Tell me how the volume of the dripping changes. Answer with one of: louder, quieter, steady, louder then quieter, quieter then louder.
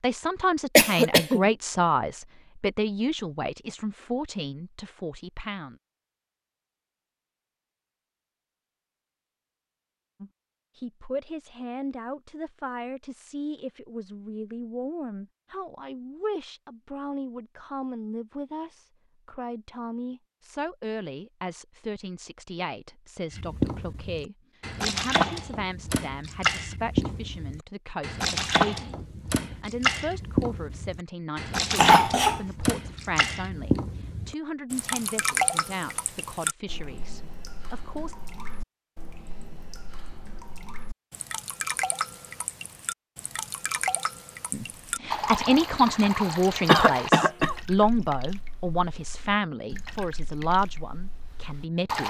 quieter.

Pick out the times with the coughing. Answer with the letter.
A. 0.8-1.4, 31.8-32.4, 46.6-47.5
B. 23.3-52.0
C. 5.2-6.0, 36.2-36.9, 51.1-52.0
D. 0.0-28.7
A.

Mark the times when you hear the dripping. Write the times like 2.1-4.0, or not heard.
23.3-52.0.